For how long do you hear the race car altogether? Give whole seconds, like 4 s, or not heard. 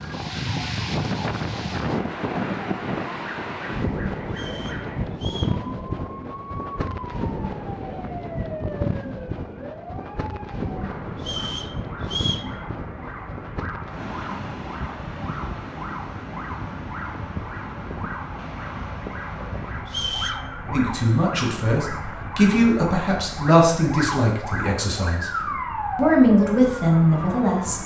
not heard.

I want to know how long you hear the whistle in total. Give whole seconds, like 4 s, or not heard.
3 s.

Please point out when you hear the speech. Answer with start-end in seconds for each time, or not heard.
20.7-25.3, 25.9-27.8.